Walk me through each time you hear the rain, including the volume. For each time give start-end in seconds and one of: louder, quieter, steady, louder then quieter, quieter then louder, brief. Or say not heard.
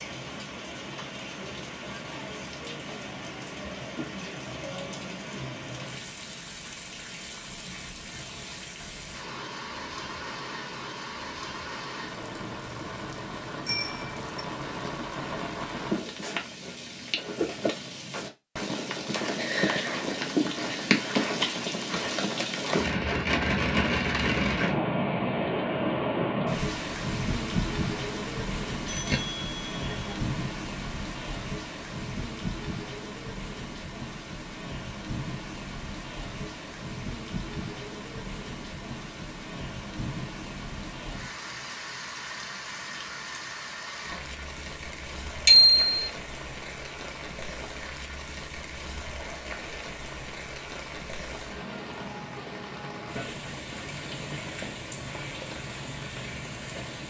0.0-57.0 louder then quieter.